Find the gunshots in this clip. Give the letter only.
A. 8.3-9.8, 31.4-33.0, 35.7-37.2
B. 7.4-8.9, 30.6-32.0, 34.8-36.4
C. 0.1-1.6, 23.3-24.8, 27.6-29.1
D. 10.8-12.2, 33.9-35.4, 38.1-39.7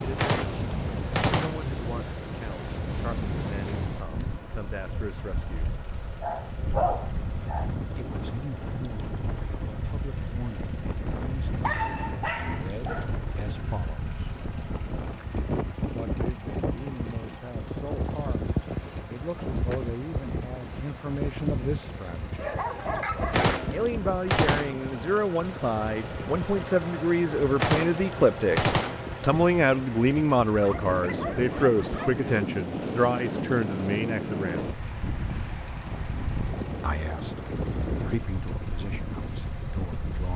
C.